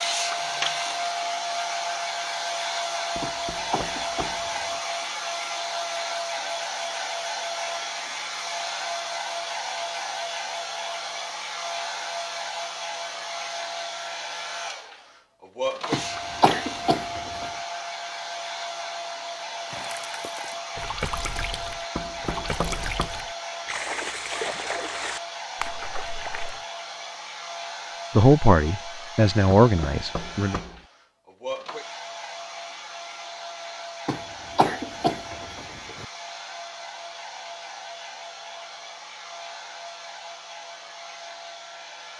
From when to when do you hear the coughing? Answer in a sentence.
The coughing can be heard from 3.2 to 4.8 s, from 15.9 to 17.4 s and from 34.0 to 36.0 s.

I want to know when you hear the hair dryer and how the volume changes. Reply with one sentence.
The hair dryer can be heard from 0.0 to 42.1 s, getting quieter.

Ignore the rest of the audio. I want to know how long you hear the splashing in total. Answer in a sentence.
The splashing can be heard for 7 seconds in total.